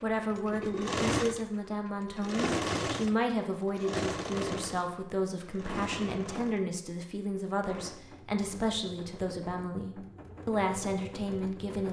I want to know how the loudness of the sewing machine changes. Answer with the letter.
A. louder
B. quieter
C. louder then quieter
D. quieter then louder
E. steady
B.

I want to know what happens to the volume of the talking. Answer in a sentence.
The loudness of the talking stays about the same.